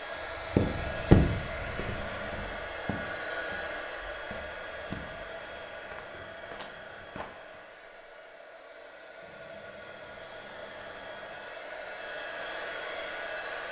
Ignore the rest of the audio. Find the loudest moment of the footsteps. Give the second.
1 s.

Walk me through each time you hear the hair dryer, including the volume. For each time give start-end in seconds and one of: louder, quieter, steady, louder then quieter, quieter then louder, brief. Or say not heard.
0.0-13.6 quieter then louder.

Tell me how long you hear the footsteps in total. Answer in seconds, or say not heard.
7 s.